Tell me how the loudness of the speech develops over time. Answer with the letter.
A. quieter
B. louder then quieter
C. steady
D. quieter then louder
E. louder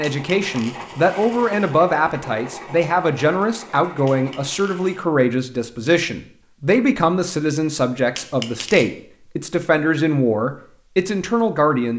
C.